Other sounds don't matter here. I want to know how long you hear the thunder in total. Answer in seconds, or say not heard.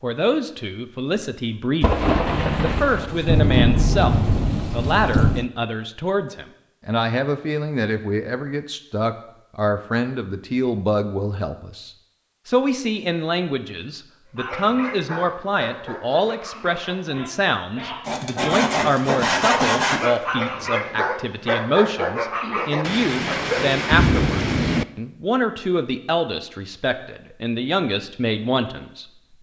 6 s.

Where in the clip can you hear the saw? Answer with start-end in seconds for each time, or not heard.
18.1-20.1.